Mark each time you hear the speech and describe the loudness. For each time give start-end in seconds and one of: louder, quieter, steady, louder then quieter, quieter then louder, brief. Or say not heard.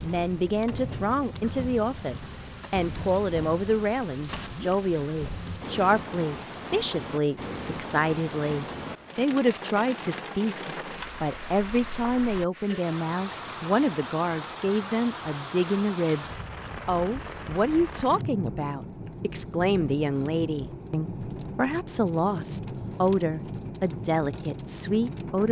0.0-10.6 steady
11.2-25.4 steady.